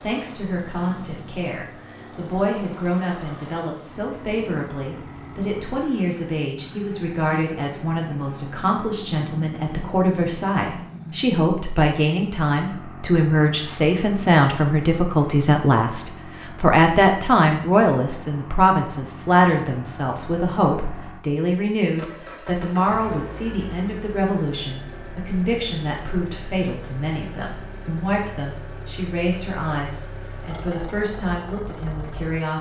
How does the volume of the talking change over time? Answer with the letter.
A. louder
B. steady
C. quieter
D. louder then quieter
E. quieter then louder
D.